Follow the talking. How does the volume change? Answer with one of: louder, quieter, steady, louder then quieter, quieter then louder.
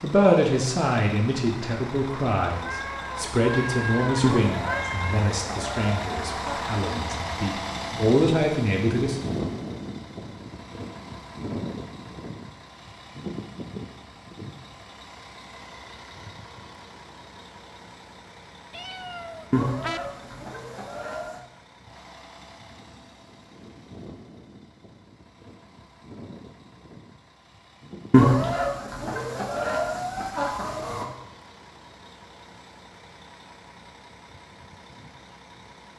quieter then louder.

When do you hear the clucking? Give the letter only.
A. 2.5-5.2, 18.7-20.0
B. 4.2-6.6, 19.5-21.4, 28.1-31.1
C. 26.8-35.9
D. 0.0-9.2
B.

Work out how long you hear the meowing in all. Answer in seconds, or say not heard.
4 s.